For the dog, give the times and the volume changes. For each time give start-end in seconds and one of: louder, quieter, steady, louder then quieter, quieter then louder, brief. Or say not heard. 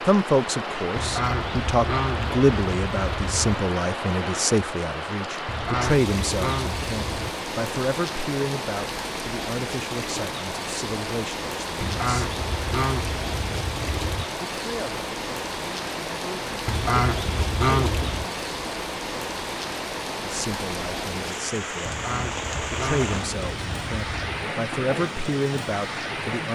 not heard.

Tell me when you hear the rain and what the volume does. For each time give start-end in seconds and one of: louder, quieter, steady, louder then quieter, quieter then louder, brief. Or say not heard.
0.0-26.5 steady.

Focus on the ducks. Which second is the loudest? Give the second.
18 s.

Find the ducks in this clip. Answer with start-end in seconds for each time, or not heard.
0.9-3.6, 5.5-7.3, 11.8-14.3, 16.6-18.2, 21.9-24.4.